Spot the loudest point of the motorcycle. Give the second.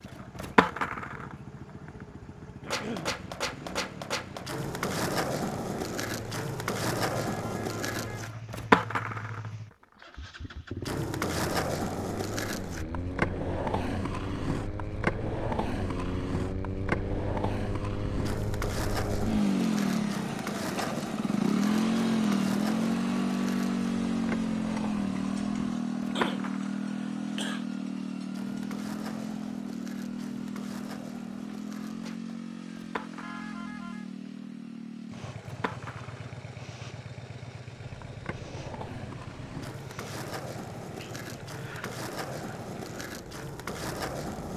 22 s.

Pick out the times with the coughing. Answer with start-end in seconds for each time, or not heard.
2.6-3.1, 26.1-27.6.